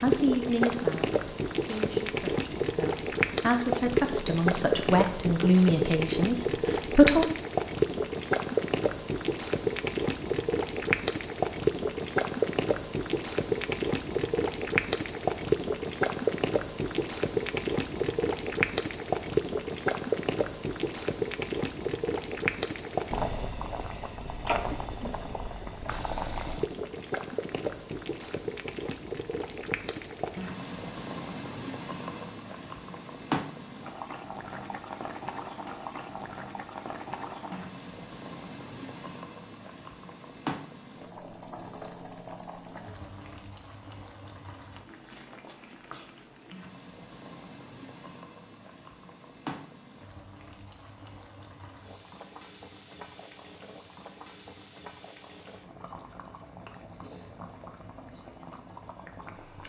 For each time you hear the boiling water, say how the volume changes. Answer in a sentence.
The boiling water can be heard from 0.0 to 59.6 s, getting quieter.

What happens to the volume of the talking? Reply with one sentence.
The loudness of the talking goes down, then up.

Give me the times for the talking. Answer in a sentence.
You can hear the talking from 0.0 to 7.2 s.